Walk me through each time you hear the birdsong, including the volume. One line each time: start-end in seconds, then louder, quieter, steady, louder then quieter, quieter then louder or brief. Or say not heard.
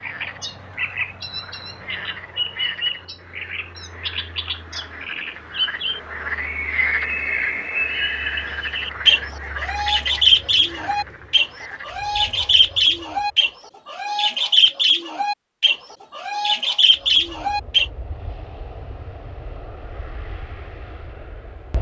0.0-17.9 louder.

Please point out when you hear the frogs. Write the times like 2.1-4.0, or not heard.
0.0-12.1.